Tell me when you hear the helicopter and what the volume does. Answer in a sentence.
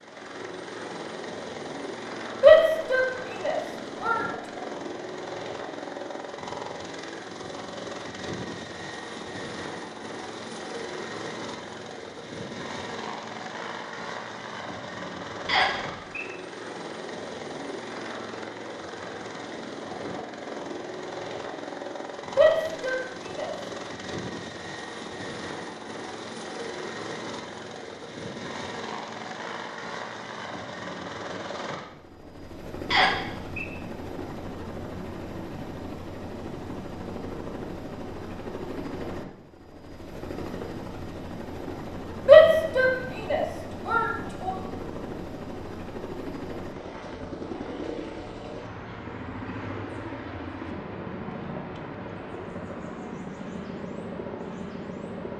The helicopter can be heard from 0.0 to 55.3 s, at a steady volume.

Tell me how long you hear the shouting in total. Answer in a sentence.
You can hear the shouting for 5 seconds altogether.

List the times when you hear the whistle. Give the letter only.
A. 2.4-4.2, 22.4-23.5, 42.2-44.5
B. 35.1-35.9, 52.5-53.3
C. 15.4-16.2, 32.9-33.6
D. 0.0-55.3
C.